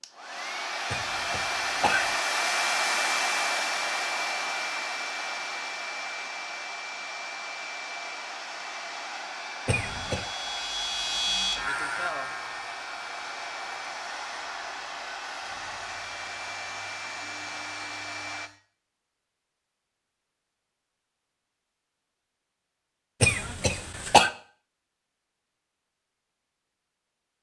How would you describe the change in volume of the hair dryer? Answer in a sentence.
The volume of the hair dryer goes down.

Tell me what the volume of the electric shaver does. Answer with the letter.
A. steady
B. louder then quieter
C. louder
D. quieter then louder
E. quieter
E.